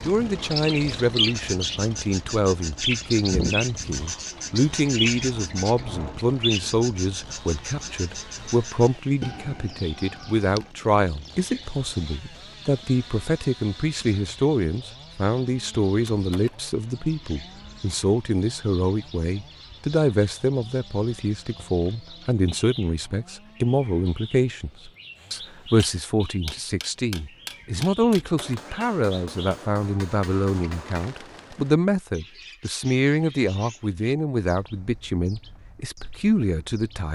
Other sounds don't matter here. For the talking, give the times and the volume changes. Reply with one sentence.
The talking can be heard from 0.1 to 37.1 s, at a steady volume.